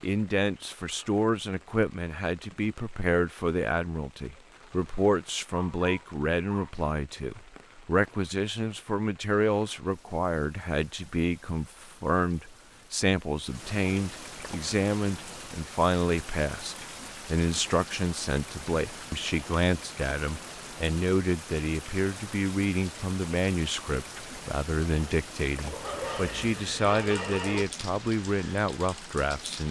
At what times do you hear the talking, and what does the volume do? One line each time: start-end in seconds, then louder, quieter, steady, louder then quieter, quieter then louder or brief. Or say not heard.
0.0-29.6 steady.